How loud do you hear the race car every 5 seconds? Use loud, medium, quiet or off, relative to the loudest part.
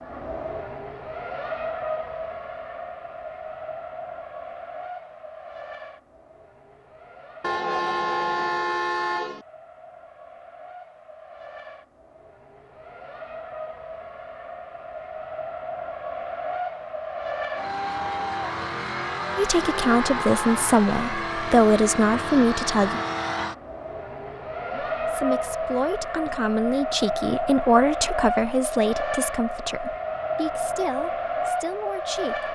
medium, quiet, quiet, loud, loud, loud, loud.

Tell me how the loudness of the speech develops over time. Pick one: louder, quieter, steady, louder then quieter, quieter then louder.
quieter.